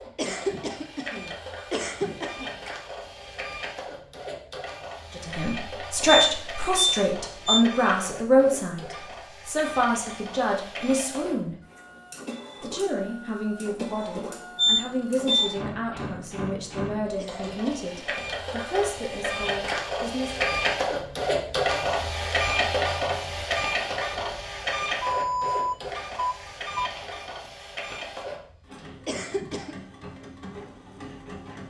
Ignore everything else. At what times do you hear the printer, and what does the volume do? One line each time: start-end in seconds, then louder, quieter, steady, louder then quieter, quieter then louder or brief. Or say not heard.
0.0-31.6 louder then quieter.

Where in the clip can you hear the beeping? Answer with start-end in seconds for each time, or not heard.
6.0-7.7, 14.6-15.6, 25.0-26.9.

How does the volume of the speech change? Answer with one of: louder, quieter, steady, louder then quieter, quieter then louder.
quieter.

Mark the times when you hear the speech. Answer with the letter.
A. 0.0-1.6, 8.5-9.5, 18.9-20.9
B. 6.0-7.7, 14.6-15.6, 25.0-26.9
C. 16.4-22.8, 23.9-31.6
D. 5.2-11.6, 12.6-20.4
D.